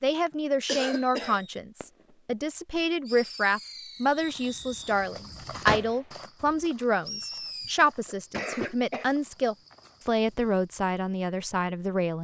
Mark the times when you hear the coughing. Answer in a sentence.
The coughing can be heard from 0.2 to 1.4 s and from 7.2 to 9.1 s.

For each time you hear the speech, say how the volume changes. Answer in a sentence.
The speech can be heard from 0.0 to 12.1 s, at a steady volume.